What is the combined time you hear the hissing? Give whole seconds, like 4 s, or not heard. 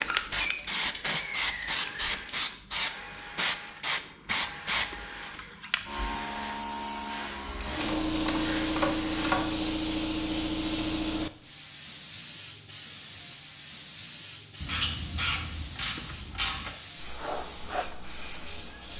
19 s.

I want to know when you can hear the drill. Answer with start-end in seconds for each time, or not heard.
0.0-9.3.